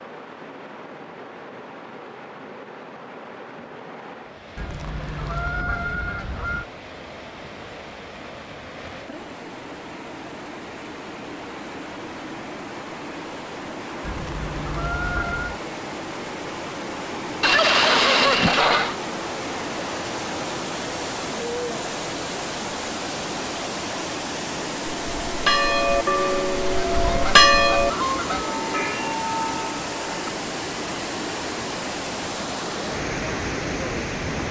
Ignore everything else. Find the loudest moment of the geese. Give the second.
18 s.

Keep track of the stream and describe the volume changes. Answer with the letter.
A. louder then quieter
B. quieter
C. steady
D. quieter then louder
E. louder
E.